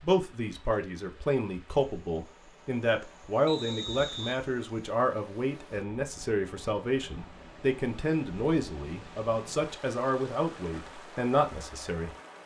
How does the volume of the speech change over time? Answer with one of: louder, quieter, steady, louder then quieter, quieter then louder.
steady.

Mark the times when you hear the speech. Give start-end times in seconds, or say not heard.
0.0-12.1.